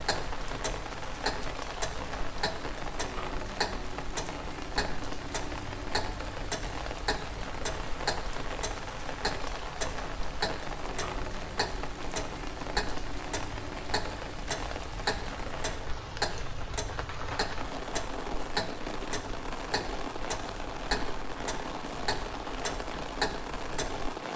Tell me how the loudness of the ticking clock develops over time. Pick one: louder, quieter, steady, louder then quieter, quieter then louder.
steady.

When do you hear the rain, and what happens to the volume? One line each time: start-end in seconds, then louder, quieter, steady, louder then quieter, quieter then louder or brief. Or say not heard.
0.0-24.3 steady.